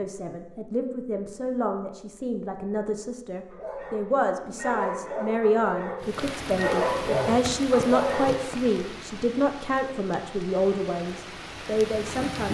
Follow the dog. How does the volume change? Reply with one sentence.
The volume of the dog goes up.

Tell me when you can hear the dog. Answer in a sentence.
The dog can be heard from 3.5 to 8.4 s.